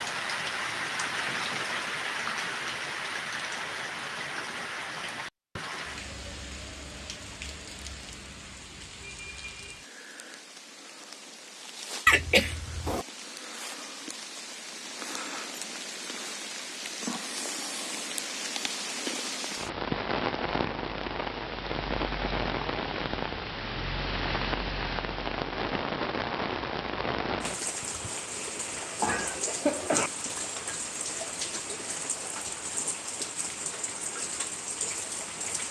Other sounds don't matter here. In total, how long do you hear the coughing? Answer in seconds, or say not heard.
2 s.